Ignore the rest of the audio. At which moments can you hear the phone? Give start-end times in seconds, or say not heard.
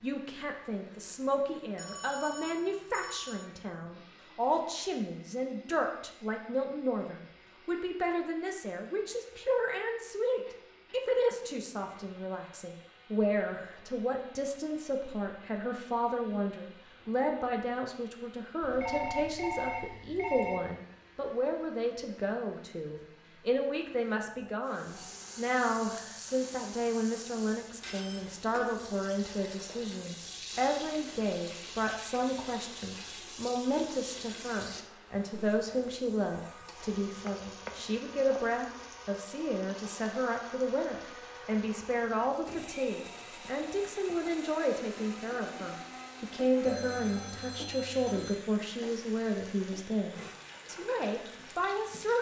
1.8-3.5, 18.6-20.6, 46.6-48.4.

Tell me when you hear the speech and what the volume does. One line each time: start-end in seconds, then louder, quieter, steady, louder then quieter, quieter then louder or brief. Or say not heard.
0.0-52.1 steady.